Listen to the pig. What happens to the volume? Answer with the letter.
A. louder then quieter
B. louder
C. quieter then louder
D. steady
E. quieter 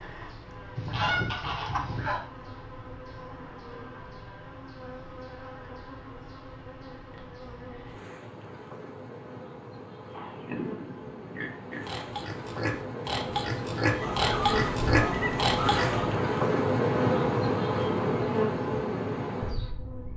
B.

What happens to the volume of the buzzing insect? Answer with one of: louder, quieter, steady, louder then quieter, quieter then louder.
louder.